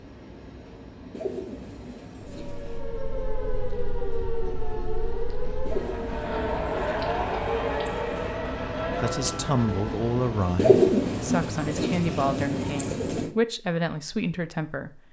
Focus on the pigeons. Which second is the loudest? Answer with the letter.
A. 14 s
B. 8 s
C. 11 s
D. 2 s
C.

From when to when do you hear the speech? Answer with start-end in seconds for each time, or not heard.
8.8-15.0.